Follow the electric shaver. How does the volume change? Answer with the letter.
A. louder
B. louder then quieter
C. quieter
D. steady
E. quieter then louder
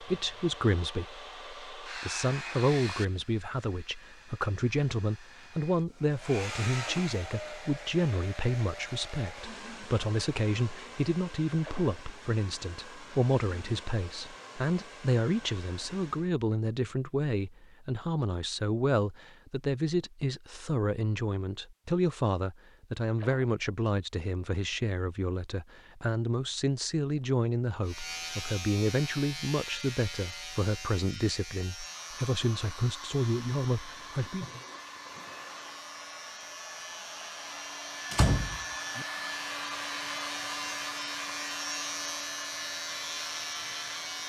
E.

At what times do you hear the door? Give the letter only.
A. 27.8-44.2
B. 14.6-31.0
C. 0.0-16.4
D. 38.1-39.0
D.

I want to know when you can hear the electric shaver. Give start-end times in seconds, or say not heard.
27.8-44.2.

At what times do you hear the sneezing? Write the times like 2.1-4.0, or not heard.
not heard.